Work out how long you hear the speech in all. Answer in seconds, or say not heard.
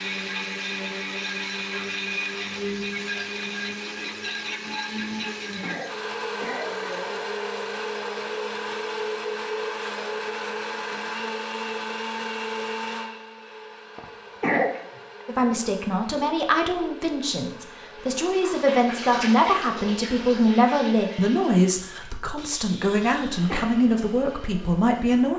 10 s.